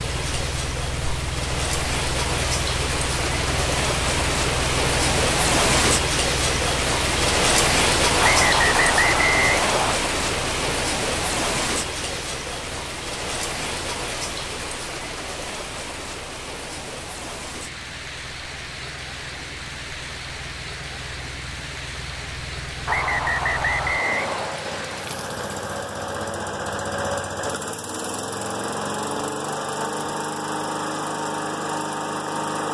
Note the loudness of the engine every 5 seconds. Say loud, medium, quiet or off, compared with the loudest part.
medium, medium, quiet, quiet, medium, loud, loud.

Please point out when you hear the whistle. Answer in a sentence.
The whistle can be heard from 8.2 to 10.0 s and from 22.9 to 24.6 s.